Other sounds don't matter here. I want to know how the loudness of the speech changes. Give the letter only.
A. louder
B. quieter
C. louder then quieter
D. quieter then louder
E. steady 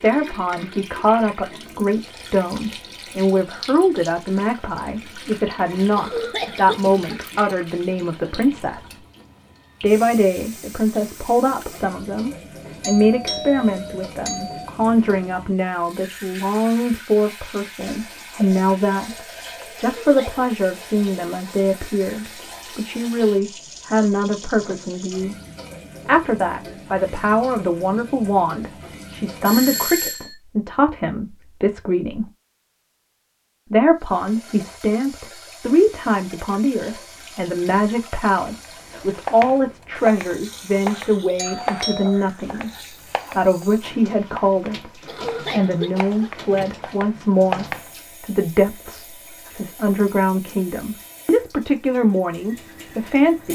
E.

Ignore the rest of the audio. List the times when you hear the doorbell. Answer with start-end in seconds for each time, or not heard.
12.8-14.7, 29.4-30.4, 41.4-42.2.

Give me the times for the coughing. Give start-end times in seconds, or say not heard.
6.0-7.8, 19.8-20.4, 45.0-46.7.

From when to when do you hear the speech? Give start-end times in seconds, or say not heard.
0.0-8.9, 9.8-25.4, 26.1-32.3, 33.7-53.5.